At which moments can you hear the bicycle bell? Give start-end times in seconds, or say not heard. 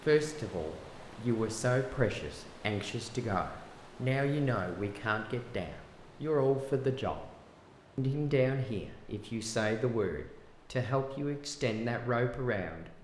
not heard.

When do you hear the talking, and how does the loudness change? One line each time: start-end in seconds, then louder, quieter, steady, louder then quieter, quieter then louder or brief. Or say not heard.
0.1-7.2 steady
8.0-12.9 steady.